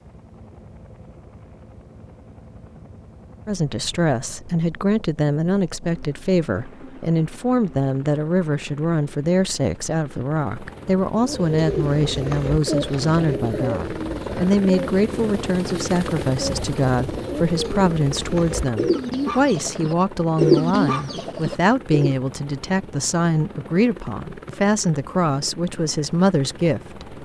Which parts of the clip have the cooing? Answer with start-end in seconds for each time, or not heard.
11.2-22.1.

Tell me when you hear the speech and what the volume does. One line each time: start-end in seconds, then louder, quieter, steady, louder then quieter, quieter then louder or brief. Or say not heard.
3.5-27.1 steady.